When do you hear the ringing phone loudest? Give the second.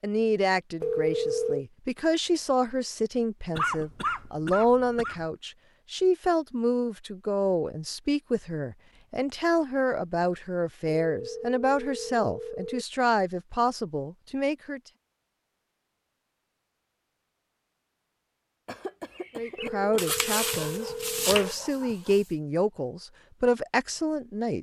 1 s.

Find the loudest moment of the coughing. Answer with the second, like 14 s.
4 s.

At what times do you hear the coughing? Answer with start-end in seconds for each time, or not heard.
3.5-5.2, 18.6-19.9.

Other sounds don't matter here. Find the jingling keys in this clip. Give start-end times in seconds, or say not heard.
not heard.